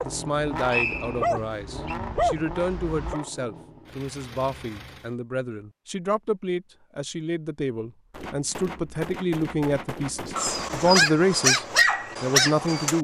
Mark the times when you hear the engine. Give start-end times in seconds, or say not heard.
0.0-5.2.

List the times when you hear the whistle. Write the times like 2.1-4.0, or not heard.
0.7-1.9.